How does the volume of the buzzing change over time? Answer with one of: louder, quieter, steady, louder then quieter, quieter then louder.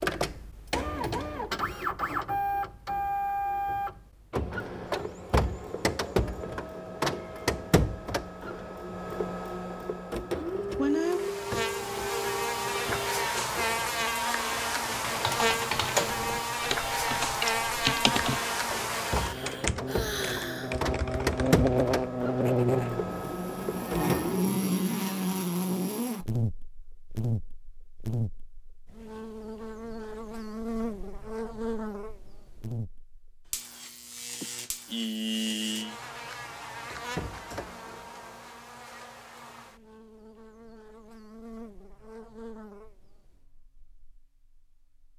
quieter.